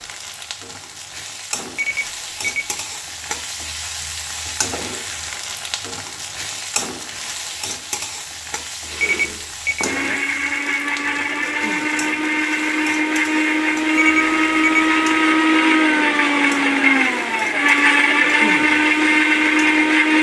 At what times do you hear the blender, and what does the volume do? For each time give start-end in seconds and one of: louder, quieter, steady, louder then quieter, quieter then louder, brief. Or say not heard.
8.8-20.1 louder.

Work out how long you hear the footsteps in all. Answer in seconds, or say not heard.
not heard.